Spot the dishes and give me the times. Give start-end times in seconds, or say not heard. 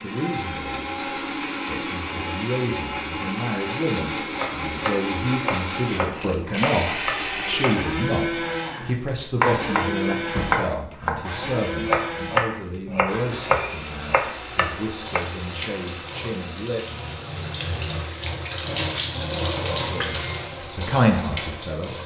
not heard.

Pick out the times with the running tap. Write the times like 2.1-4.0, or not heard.
14.9-22.0.